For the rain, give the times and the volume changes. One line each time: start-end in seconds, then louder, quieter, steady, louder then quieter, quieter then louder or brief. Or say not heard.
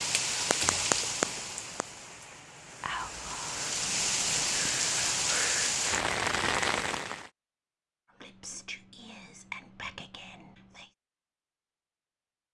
0.0-7.3 quieter then louder.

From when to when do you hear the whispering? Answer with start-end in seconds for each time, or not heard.
2.8-4.5, 8.2-10.9.